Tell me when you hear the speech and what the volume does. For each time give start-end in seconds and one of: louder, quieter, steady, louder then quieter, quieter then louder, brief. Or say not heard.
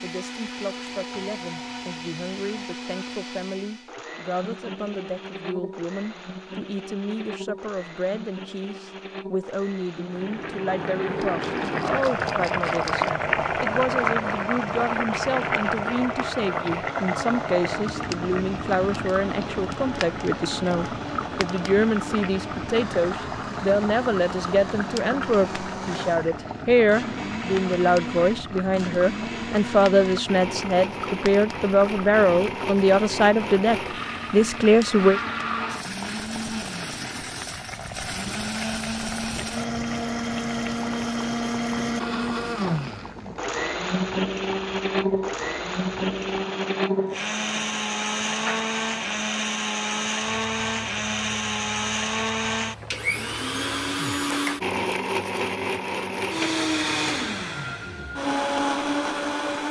0.0-35.2 louder.